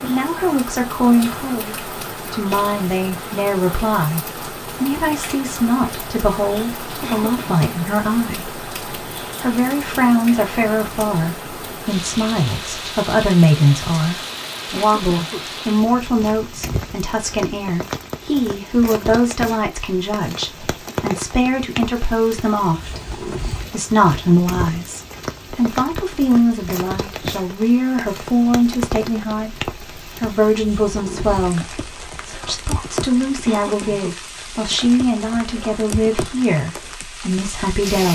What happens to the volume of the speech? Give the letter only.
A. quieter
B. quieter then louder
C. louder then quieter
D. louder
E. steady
E.